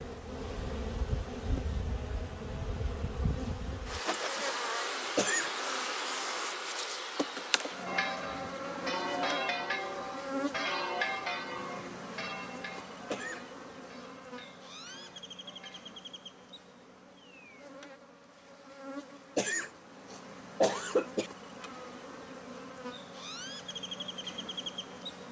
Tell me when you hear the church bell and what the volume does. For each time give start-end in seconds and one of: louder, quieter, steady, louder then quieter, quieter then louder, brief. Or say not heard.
7.8-16.0 quieter.